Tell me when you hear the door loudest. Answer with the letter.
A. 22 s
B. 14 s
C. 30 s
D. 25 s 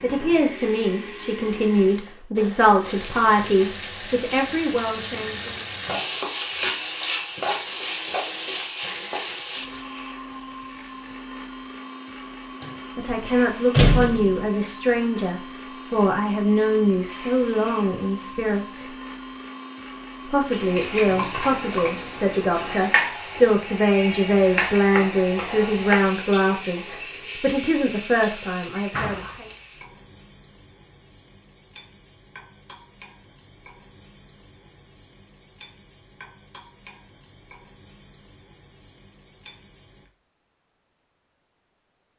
B.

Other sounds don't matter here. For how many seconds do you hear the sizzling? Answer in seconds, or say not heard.
27 s.